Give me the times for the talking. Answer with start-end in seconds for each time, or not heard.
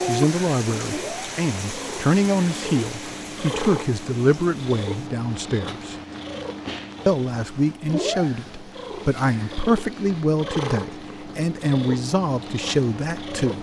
0.0-6.0, 7.0-13.5.